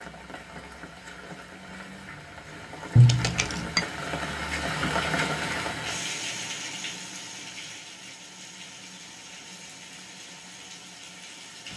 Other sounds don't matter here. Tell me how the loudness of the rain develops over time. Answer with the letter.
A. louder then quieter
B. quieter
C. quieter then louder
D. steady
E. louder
A.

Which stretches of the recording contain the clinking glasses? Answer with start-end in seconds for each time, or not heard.
3.0-3.9.